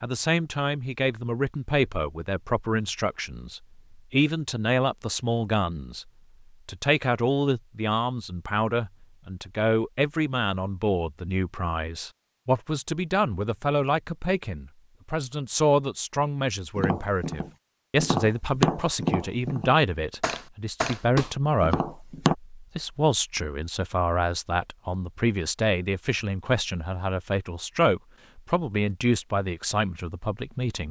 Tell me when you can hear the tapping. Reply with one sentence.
You can hear the tapping from 16.8 to 22.4 s.